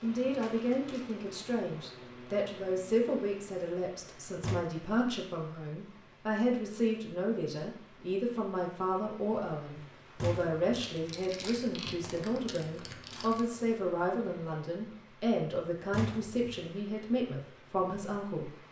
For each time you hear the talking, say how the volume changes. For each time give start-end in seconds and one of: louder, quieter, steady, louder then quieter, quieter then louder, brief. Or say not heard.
0.0-18.5 steady.